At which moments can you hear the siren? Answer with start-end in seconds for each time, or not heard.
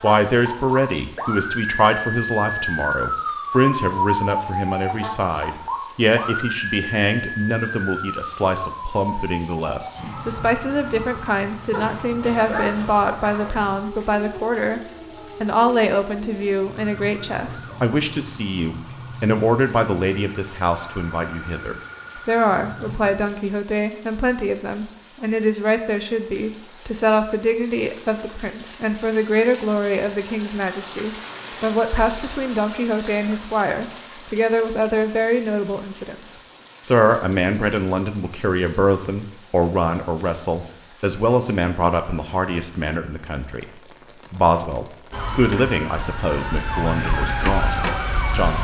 0.0-23.1, 45.1-48.5.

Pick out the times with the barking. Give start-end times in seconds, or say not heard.
11.7-13.6.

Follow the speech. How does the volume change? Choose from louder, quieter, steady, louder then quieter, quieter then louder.
steady.